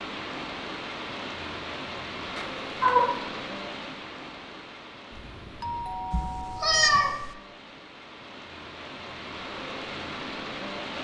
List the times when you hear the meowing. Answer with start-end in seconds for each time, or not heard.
2.4-3.2, 6.1-7.3.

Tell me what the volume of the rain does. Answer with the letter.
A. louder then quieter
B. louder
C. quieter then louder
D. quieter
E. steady
C.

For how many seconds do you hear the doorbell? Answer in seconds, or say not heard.
2 s.